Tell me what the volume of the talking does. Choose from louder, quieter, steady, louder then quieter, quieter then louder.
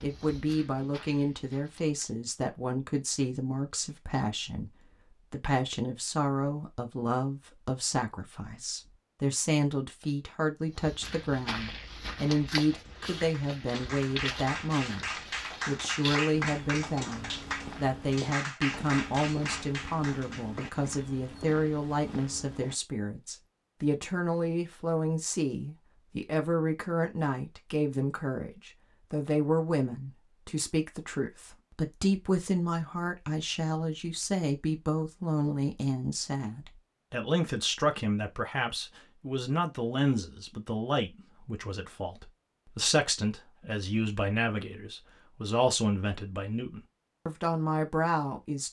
steady.